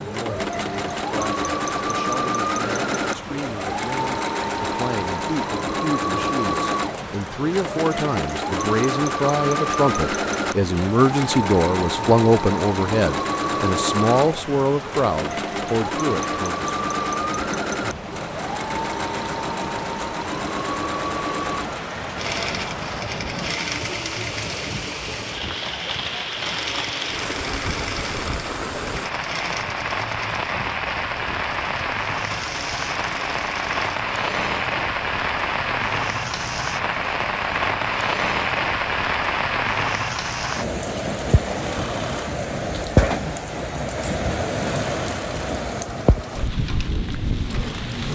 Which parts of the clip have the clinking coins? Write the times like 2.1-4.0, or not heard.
not heard.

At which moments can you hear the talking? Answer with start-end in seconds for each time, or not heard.
0.0-16.7.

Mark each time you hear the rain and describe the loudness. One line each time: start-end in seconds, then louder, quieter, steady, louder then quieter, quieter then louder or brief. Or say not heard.
0.0-48.1 louder.